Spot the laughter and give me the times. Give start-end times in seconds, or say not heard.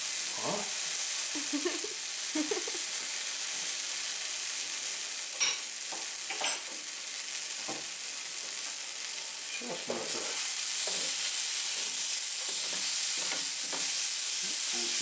1.4-2.8.